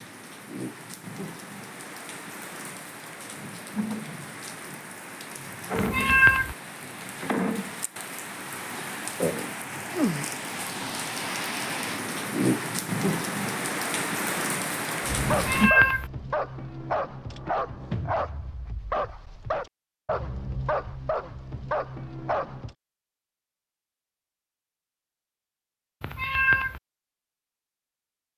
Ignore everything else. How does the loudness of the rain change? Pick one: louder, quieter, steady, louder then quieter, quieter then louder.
louder.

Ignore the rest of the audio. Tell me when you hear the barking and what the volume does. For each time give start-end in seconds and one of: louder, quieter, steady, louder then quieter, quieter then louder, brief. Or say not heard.
15.1-22.8 steady.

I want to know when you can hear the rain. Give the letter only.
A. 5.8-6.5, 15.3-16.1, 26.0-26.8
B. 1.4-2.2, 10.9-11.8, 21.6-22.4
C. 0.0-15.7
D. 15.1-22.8
C.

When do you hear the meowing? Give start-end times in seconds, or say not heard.
5.8-6.5, 15.3-16.1, 26.0-26.8.